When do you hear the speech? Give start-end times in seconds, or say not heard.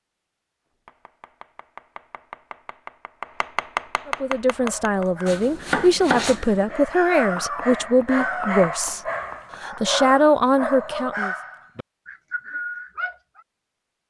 4.0-11.3.